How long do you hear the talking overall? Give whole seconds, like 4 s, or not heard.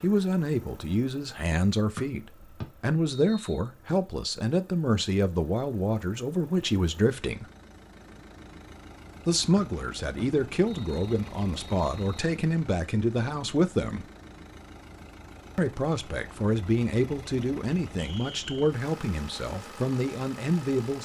17 s.